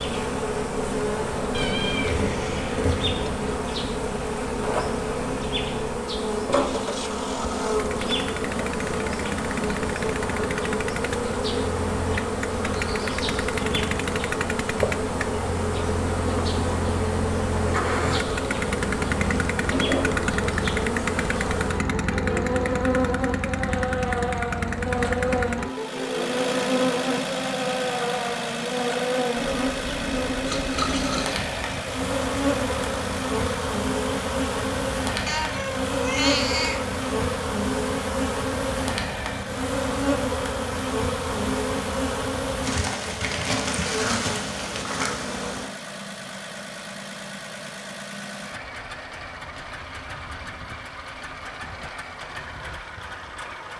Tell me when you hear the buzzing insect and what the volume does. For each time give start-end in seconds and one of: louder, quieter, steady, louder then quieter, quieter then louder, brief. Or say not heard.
0.0-45.7 steady.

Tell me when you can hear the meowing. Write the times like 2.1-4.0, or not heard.
1.5-3.5, 35.2-36.9.